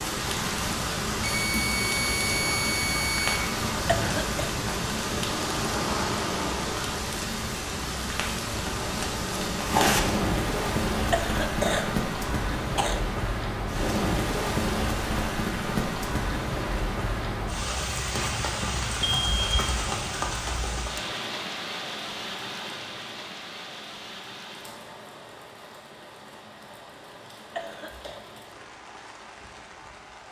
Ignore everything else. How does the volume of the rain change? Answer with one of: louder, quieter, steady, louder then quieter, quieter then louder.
quieter.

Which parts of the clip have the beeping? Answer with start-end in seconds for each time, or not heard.
1.2-3.5, 19.0-19.6.